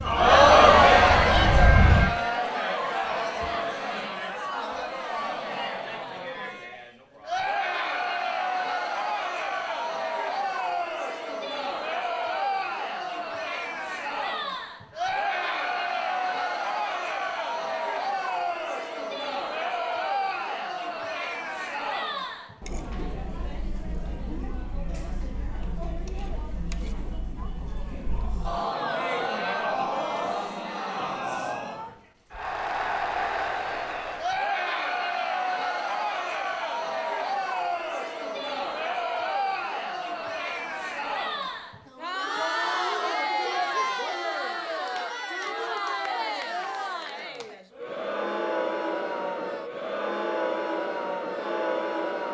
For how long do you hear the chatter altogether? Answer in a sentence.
You can hear the chatter for 52 seconds altogether.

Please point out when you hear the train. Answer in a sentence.
You can hear the train from 0.0 to 2.1 s.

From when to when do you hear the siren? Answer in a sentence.
You can't hear the siren here.